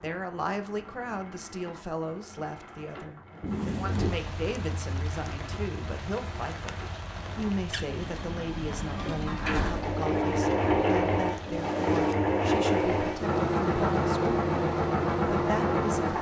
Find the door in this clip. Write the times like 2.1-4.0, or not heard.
3.4-4.2, 9.2-9.9.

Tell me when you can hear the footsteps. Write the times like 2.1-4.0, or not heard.
not heard.